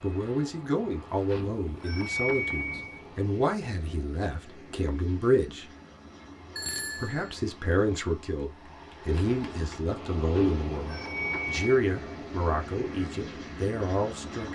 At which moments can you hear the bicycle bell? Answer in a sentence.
You can hear the bicycle bell from 1.2 to 3.0 s, from 6.5 to 7.3 s and from 10.3 to 11.8 s.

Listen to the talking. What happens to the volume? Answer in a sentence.
The volume of the talking stays about the same.